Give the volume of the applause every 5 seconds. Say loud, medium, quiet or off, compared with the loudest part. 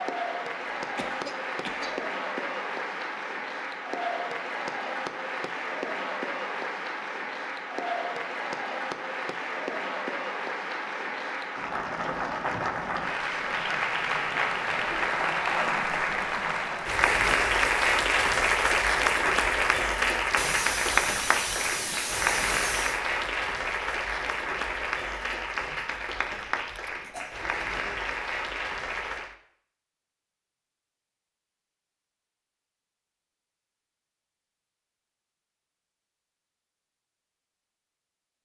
medium, medium, medium, loud, loud, medium, off, off.